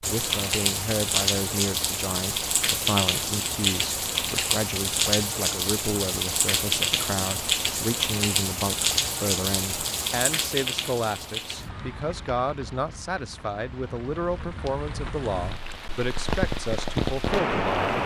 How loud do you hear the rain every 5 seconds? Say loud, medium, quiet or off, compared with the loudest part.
loud, loud, medium, loud.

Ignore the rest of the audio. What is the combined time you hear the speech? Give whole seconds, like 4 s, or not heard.
18 s.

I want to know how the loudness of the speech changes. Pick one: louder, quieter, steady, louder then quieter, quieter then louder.
steady.